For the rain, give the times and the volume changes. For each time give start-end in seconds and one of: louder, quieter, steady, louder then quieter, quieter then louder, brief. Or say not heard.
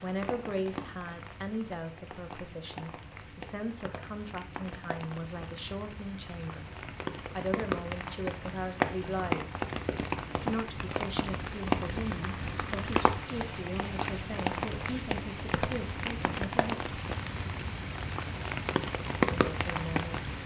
0.0-20.4 louder.